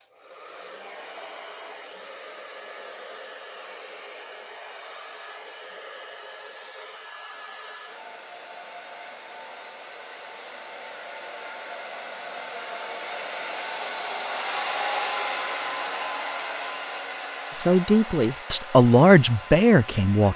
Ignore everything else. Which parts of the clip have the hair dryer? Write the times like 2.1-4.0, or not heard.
0.0-20.3.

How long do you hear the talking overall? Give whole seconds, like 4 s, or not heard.
3 s.